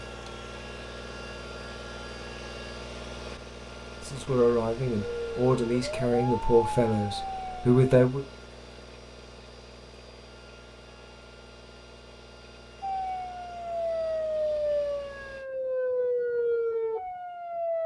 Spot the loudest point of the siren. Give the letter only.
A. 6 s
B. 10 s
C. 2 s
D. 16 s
D.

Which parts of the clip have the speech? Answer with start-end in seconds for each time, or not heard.
4.0-8.2.